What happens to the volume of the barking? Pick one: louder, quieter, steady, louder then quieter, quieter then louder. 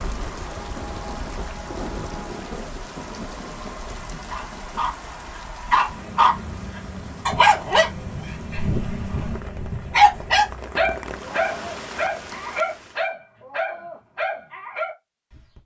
quieter.